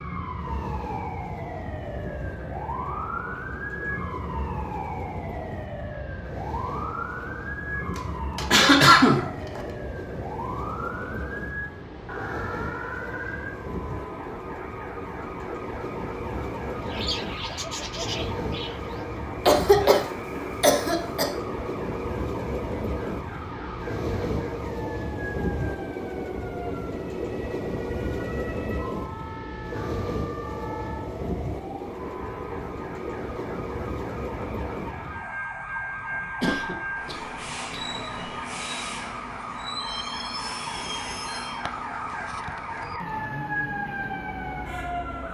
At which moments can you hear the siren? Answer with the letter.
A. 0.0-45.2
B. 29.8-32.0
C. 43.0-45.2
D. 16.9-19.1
A.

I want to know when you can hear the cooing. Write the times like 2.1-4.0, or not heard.
16.9-19.1.